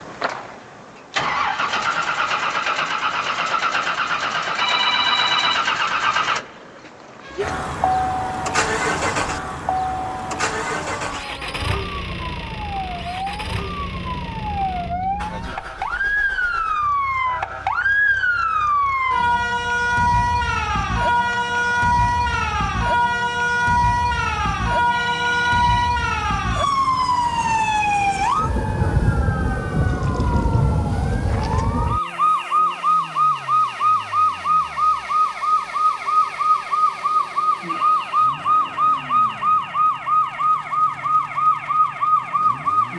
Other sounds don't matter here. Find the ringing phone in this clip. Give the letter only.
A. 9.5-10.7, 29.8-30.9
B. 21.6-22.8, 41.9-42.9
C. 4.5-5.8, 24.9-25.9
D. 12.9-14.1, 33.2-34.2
C.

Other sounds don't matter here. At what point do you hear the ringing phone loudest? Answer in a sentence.
The loudest moment of the ringing phone is at 5 seconds.